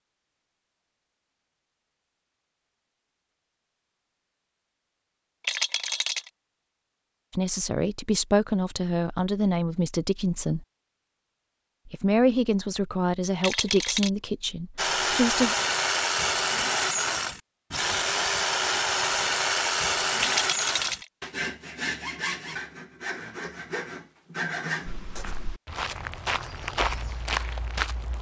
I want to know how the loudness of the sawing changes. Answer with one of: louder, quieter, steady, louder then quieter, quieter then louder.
quieter.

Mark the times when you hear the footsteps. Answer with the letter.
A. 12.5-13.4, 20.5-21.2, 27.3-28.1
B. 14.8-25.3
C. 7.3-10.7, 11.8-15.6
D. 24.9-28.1
D.